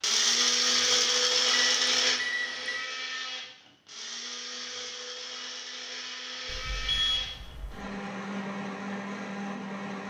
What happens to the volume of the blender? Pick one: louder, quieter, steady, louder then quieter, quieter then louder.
quieter.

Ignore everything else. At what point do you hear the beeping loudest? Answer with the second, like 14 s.
7 s.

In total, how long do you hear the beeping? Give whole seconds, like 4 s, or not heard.
3 s.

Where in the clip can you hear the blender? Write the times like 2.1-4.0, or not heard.
0.0-10.0.